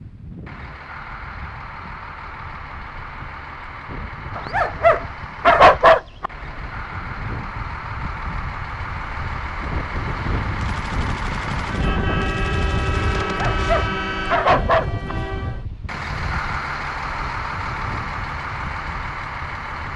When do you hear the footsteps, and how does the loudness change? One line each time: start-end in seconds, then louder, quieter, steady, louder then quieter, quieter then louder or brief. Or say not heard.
not heard.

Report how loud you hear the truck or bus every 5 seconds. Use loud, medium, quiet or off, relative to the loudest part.
medium, medium, loud, loud.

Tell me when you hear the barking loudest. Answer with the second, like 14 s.
6 s.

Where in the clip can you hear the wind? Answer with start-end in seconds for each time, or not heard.
0.0-19.9.